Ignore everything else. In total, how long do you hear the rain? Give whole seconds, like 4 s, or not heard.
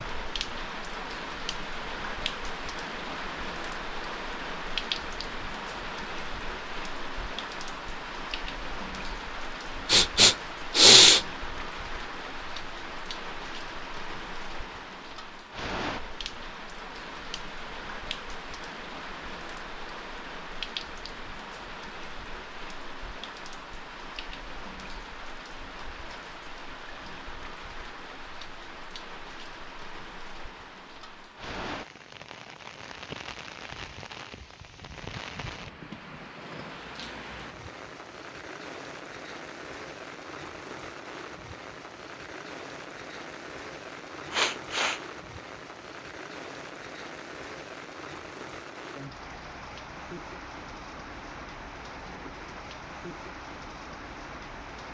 55 s.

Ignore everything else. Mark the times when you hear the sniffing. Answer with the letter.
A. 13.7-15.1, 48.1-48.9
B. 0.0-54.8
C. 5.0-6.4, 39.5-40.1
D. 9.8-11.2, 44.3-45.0
D.